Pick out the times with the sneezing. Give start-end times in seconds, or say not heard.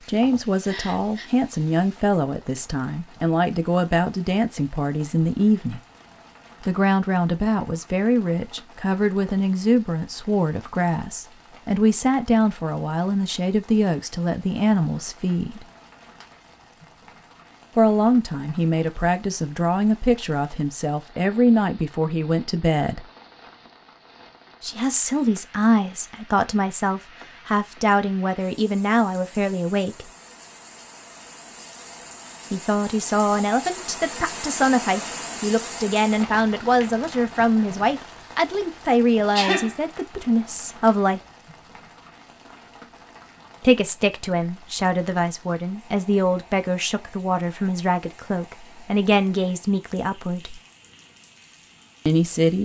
0.2-1.3, 39.3-39.8.